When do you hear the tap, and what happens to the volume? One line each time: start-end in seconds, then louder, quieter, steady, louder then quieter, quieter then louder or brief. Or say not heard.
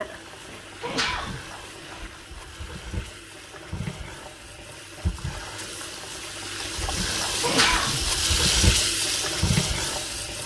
0.0-10.4 louder.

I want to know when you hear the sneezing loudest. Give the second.
8 s.